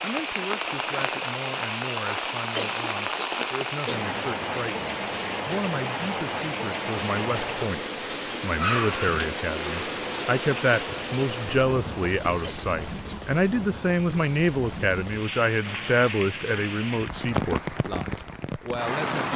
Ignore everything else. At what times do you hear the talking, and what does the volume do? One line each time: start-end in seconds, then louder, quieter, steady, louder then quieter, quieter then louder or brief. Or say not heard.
0.0-19.3 louder.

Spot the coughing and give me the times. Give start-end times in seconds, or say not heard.
2.5-4.2, 12.4-13.2.